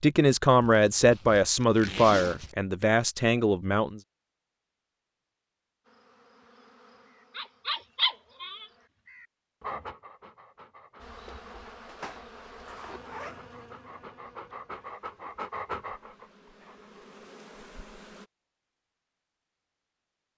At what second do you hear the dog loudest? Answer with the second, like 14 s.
8 s.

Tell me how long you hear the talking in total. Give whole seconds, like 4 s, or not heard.
4 s.